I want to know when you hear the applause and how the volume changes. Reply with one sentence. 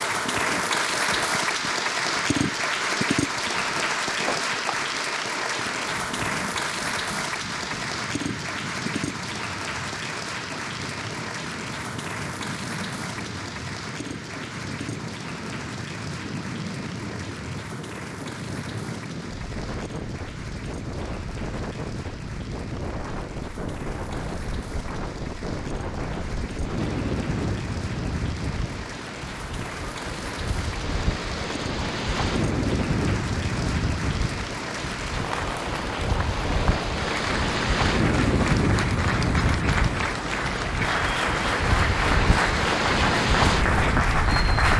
You can hear the applause from 0.0 to 44.7 s, getting quieter then louder.